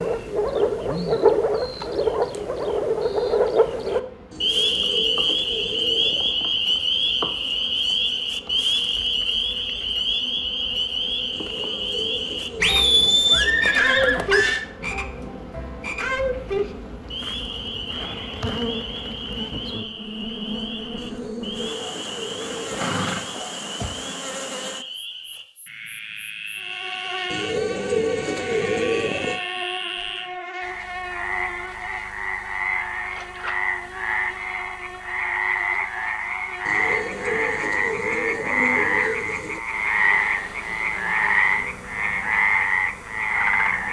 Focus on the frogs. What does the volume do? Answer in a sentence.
The loudness of the frogs goes down, then up.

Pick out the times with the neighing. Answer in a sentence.
You can hear the neighing from 12.6 to 14.7 s and from 22.4 to 23.9 s.